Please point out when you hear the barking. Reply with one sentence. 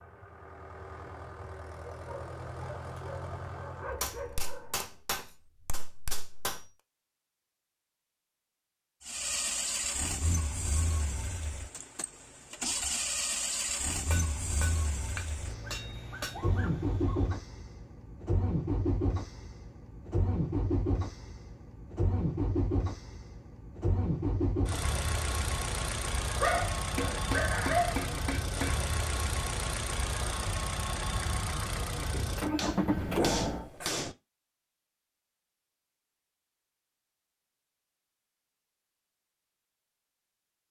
You can hear the barking from 2.0 to 5.0 s, from 15.4 to 17.4 s, from 26.4 to 28.1 s and from 33.0 to 34.0 s.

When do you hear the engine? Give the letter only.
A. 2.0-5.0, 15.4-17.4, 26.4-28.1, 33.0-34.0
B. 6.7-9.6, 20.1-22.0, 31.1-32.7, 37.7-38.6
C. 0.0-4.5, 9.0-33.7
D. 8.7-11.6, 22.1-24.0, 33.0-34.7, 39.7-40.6
C.